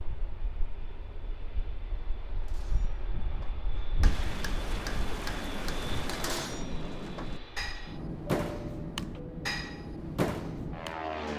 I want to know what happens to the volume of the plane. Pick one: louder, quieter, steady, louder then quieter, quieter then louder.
louder.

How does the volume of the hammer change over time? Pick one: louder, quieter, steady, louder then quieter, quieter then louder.
louder.